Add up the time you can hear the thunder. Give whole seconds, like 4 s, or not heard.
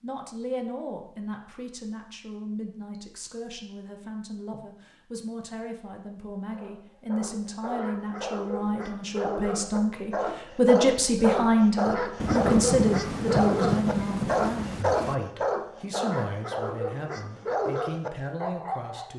3 s.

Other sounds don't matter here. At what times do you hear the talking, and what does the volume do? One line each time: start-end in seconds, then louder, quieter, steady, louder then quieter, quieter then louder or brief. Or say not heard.
0.0-19.1 louder then quieter.